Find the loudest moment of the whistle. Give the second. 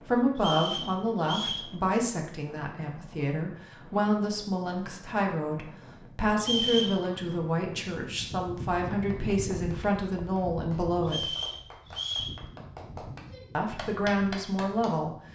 7 s.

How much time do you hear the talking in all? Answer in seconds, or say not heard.
13 s.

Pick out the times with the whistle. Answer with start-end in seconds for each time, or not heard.
0.3-1.6, 6.4-7.0, 11.1-12.3.